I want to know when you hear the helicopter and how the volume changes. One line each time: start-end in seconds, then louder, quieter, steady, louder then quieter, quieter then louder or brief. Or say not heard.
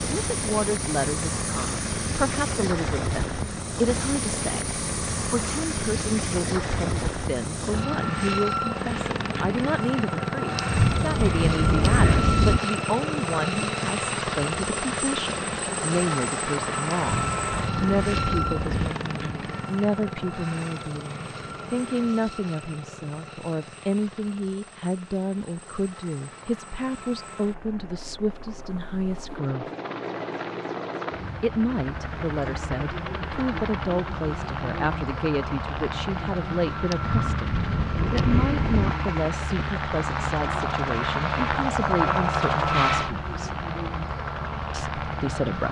0.0-45.6 quieter then louder.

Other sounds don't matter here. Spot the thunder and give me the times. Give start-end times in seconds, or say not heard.
10.6-12.6, 17.1-18.9, 36.9-38.9.